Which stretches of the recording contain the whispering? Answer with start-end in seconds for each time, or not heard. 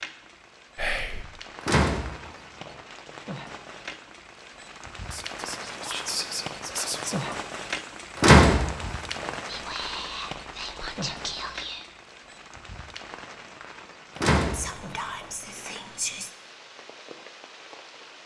0.8-1.2, 5.1-7.5, 9.4-11.8, 14.5-16.3.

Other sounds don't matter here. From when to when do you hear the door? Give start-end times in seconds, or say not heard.
1.6-2.7, 8.2-9.2, 14.2-15.2.